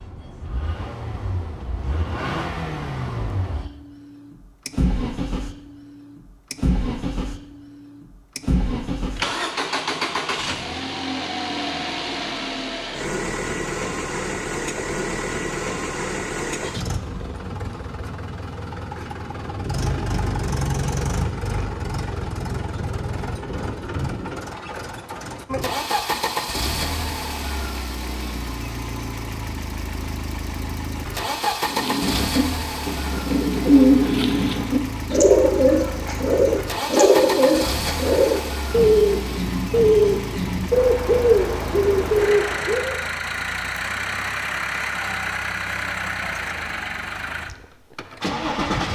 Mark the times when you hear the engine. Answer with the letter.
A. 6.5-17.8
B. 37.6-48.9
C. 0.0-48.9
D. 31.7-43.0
C.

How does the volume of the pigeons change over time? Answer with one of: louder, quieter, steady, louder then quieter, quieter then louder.
steady.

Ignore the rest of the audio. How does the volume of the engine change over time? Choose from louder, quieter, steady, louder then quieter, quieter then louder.
steady.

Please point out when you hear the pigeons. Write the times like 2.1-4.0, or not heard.
31.7-43.0.